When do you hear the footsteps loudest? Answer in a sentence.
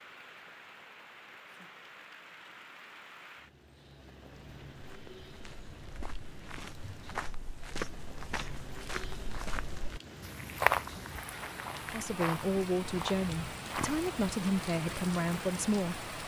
The loudest moment of the footsteps is at 11 seconds.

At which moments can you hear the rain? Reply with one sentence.
You can hear the rain from 0.0 to 16.2 s.